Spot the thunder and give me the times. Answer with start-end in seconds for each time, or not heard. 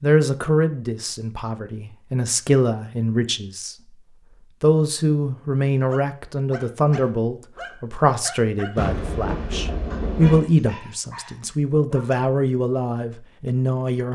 8.8-10.4.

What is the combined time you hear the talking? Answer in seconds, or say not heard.
13 s.